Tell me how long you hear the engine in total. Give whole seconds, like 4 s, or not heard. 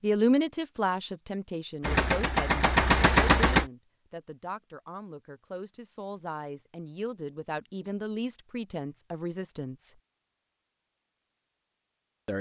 2 s.